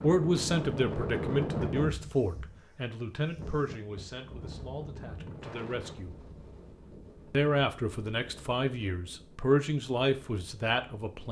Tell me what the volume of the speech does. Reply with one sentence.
The loudness of the speech goes down, then up.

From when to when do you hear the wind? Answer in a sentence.
The wind can be heard from 0.0 to 11.2 s.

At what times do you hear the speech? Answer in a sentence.
You can hear the speech from 0.0 to 6.2 s and from 7.3 to 11.2 s.